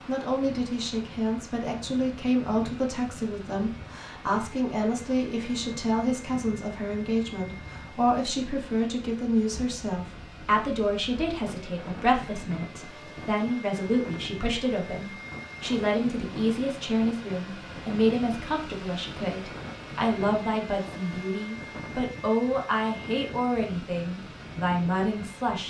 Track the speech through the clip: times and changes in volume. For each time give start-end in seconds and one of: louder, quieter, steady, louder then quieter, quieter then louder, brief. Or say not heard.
0.1-25.6 steady.